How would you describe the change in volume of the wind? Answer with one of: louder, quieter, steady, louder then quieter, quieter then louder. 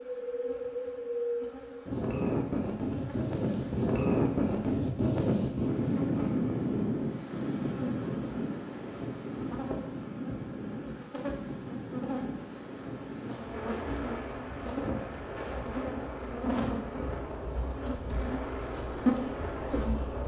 quieter.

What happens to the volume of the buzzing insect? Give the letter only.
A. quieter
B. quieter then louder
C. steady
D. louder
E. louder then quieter
D.